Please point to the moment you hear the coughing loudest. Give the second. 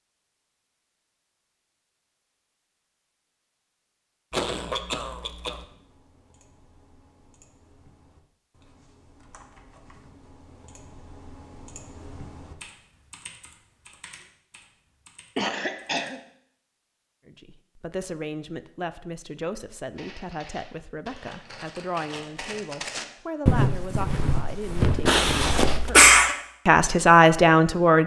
26 s.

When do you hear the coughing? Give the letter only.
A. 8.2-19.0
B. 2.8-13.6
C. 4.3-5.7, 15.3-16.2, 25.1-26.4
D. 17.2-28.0
C.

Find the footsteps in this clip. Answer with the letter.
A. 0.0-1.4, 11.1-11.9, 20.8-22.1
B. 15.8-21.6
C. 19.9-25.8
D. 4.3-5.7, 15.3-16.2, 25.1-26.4
C.